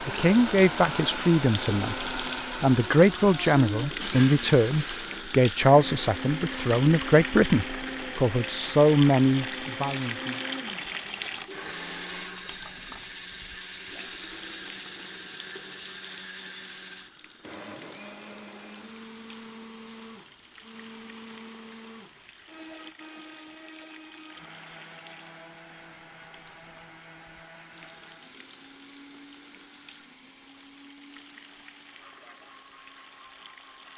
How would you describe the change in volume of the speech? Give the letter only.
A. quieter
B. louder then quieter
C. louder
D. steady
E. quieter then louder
D.